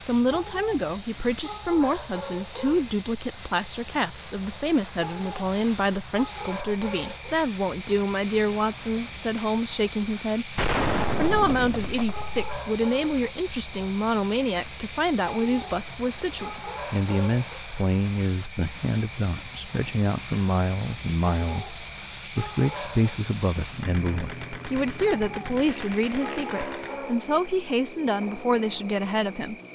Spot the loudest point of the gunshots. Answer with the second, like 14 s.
11 s.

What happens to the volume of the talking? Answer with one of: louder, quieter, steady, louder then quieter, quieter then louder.
steady.